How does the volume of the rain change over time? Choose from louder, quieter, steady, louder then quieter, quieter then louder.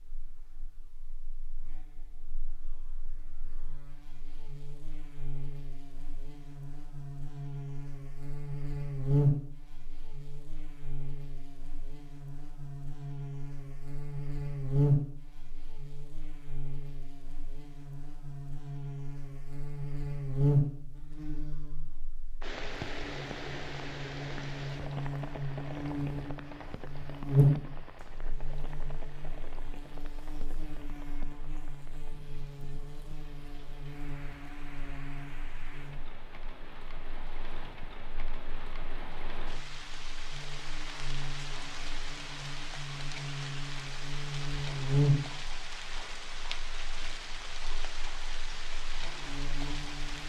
quieter then louder.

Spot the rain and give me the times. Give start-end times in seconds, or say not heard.
22.4-50.2.